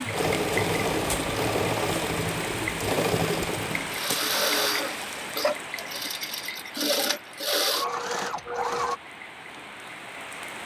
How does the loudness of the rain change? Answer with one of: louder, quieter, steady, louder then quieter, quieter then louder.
quieter.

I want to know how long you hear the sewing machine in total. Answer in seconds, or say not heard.
9 s.